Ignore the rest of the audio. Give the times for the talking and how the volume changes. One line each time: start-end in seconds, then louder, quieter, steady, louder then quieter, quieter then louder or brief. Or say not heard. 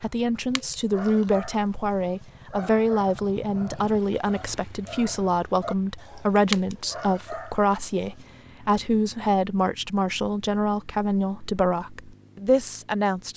0.0-13.3 steady.